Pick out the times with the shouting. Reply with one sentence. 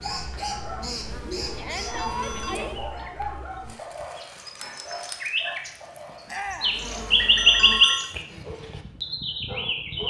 The shouting can be heard from 1.6 to 2.8 s and from 6.2 to 6.8 s.